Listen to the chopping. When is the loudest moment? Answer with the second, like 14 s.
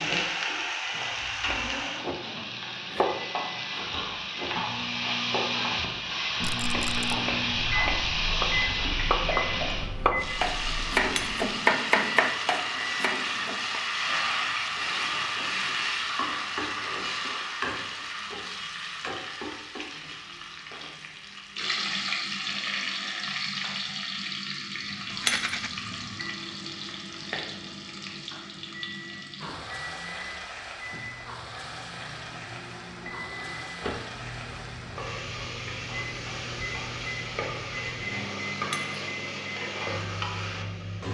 12 s.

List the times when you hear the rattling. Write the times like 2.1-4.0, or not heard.
6.4-7.1, 25.1-25.7.